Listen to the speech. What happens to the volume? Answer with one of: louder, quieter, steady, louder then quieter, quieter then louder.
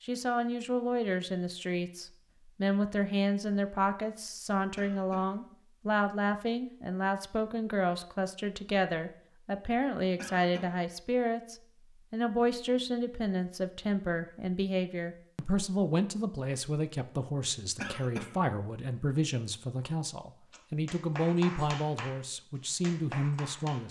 steady.